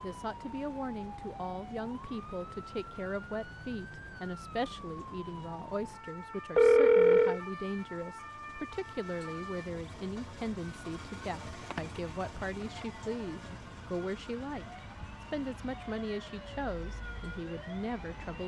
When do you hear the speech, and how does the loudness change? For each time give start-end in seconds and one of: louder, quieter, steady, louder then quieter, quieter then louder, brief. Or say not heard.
0.0-18.4 steady.